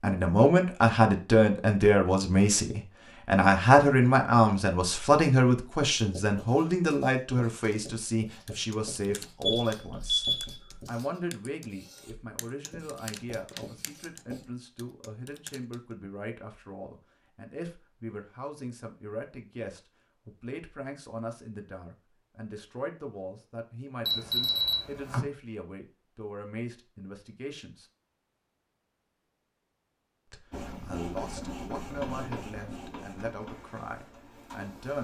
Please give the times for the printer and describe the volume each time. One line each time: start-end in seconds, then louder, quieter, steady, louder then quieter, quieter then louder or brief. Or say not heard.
30.5-34.9 quieter.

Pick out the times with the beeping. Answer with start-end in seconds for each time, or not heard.
9.4-10.8, 24.1-25.2.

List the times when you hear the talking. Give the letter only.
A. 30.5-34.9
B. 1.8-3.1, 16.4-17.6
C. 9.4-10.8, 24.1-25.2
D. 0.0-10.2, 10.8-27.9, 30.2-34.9
D.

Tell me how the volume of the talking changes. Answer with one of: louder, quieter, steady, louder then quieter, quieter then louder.
quieter.